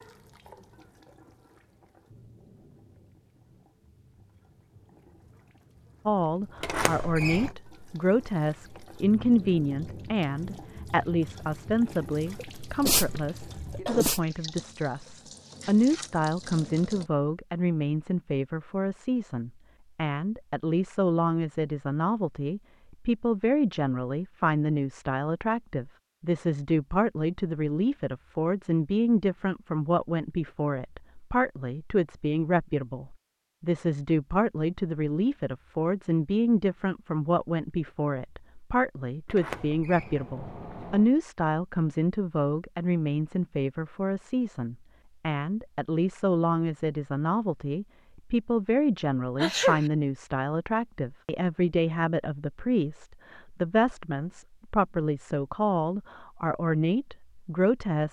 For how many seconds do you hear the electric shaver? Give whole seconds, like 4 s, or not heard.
not heard.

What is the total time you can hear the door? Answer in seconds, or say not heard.
3 s.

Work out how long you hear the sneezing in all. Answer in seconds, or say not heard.
2 s.